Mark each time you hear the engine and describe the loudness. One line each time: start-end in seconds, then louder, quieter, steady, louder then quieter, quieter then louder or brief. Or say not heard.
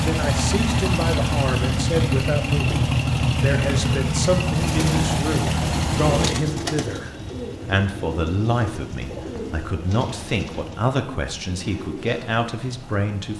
0.0-13.3 quieter.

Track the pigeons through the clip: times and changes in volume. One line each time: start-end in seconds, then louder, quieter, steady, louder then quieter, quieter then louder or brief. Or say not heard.
4.5-12.3 quieter.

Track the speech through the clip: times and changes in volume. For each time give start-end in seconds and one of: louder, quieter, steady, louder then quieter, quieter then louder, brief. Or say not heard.
0.0-13.3 steady.